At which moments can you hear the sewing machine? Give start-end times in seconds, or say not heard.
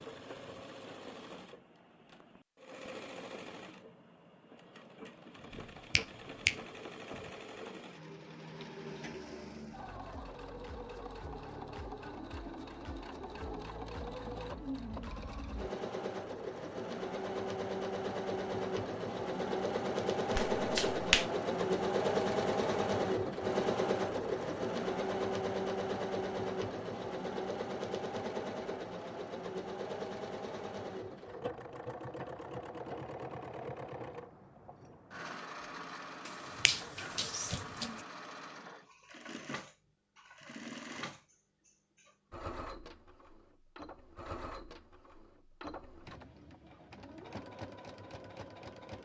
0.0-49.0.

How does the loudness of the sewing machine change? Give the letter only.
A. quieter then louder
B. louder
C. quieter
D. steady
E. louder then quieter
E.